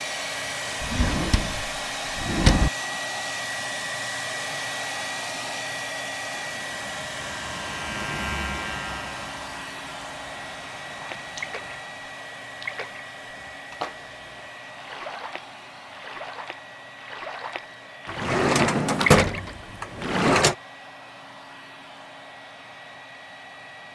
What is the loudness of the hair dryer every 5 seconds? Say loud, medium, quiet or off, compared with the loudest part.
loud, loud, medium, quiet, quiet.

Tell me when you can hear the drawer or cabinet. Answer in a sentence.
The drawer or cabinet can be heard from 0.8 to 2.7 s and from 18.1 to 20.6 s.